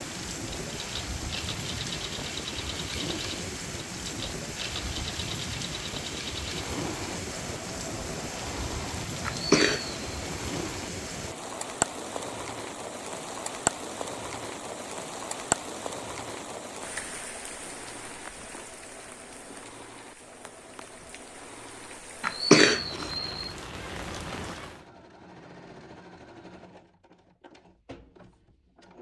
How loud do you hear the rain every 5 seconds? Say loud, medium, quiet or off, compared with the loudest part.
loud, loud, loud, loud, medium, off.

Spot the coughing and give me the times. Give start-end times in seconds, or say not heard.
9.2-10.1, 22.2-23.3.